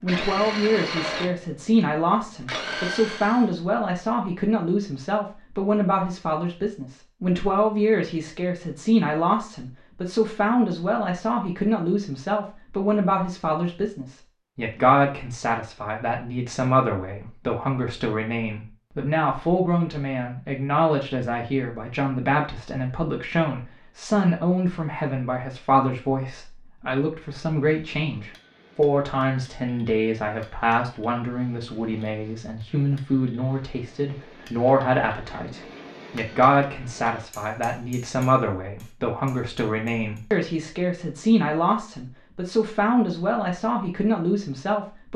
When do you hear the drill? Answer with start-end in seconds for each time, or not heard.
0.1-3.5.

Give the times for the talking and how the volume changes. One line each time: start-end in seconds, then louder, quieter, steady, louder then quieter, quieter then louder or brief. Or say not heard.
0.0-45.1 steady.